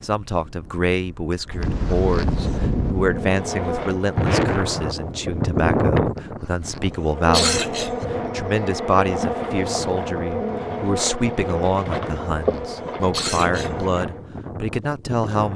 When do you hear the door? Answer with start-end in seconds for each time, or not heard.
not heard.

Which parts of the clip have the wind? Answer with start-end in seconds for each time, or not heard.
0.0-15.5.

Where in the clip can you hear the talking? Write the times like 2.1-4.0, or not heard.
0.0-15.5.